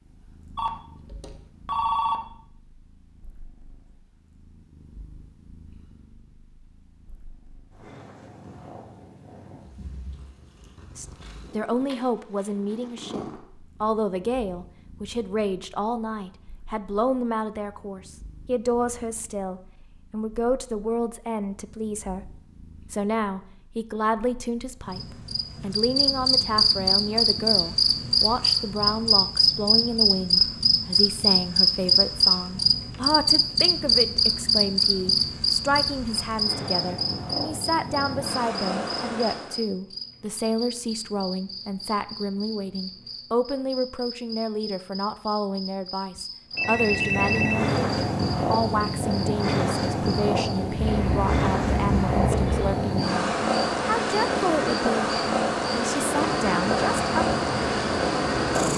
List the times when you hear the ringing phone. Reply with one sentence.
The ringing phone can be heard from 0.6 to 2.1 s and from 46.1 to 47.8 s.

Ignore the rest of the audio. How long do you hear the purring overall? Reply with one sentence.
The purring can be heard for 52 seconds in total.